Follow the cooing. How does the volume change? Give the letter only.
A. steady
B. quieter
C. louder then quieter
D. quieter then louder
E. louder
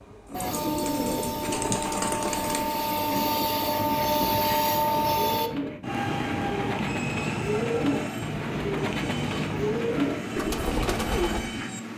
D.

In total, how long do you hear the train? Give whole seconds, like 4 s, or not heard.
12 s.